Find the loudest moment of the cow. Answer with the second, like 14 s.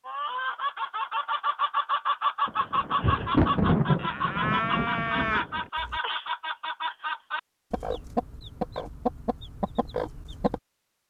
5 s.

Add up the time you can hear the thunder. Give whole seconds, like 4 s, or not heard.
3 s.